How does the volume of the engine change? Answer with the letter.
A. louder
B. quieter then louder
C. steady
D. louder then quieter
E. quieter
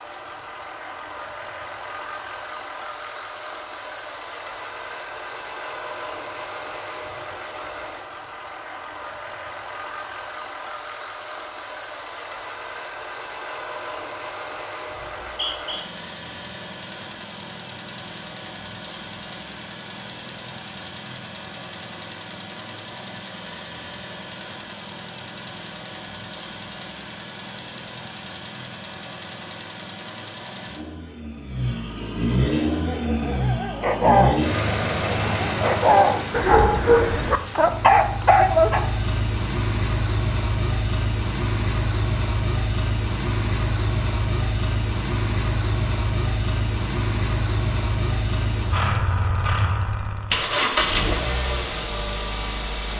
A.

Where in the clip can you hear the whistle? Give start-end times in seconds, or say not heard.
15.1-15.8.